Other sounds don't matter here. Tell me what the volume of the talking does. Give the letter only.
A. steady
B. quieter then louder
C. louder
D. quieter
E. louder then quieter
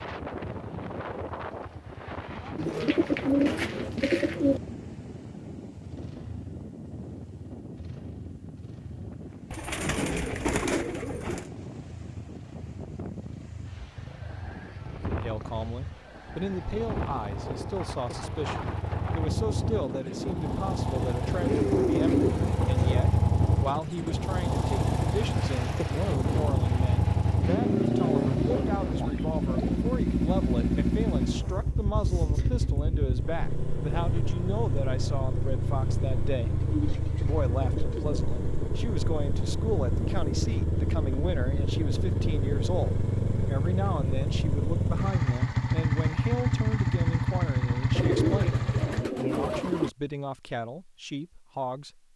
A.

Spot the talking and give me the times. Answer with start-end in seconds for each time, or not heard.
15.1-52.1.